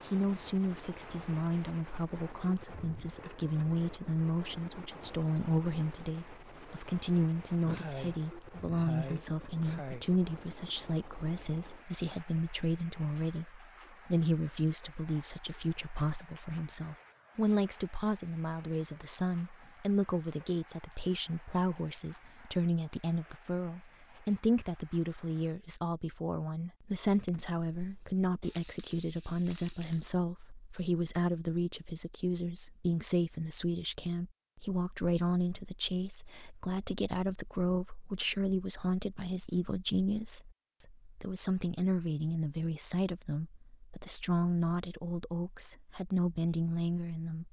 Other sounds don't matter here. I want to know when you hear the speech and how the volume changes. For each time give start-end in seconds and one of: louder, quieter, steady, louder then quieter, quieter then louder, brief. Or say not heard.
0.1-47.4 steady.